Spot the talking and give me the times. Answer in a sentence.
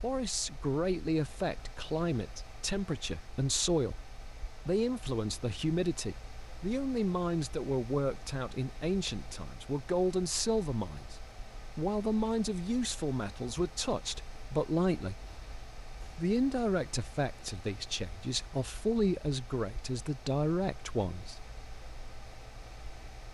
You can hear the talking from 0.0 to 11.2 s, from 11.8 to 15.2 s and from 16.1 to 21.4 s.